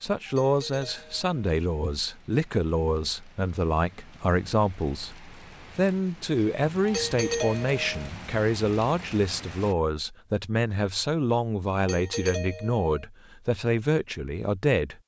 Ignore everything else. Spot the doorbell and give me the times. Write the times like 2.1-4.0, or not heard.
0.2-1.2, 6.8-8.1, 11.8-13.1.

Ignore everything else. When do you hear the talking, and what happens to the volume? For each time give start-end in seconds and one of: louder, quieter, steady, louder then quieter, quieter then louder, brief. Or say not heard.
0.0-14.9 steady.